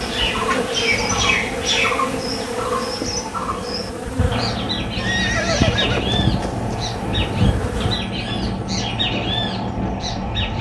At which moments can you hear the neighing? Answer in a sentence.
The neighing can be heard from 5.0 to 6.8 s.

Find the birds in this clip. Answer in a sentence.
You can hear the birds from 0.0 to 10.5 s.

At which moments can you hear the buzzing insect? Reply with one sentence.
The buzzing insect can be heard from 0.0 to 8.0 s.